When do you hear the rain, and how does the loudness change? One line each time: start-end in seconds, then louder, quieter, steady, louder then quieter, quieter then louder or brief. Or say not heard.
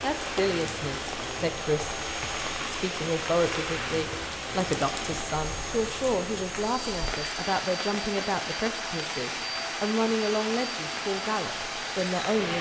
0.0-12.5 steady.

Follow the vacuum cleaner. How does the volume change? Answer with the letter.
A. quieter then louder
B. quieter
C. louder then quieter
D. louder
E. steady
E.